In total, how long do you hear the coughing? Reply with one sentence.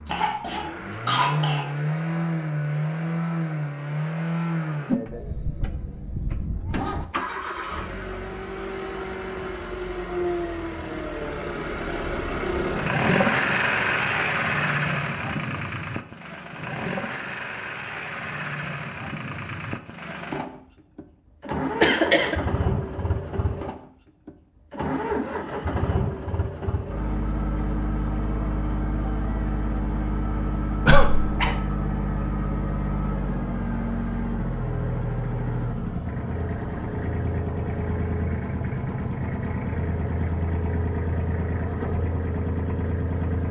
The coughing can be heard for 3 seconds in total.